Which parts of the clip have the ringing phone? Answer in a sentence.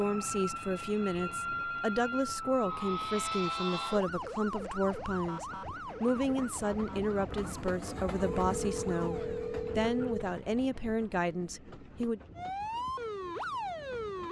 The ringing phone can be heard from 0.6 to 2.5 s and from 8.4 to 10.2 s.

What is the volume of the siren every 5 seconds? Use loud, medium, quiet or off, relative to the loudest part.
loud, medium, loud.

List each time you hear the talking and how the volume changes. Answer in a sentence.
You can hear the talking from 0.0 to 12.2 s, at a steady volume.